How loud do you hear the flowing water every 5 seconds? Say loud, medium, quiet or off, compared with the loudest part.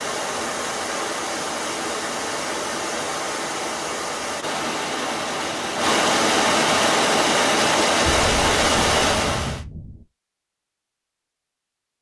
medium, loud, off.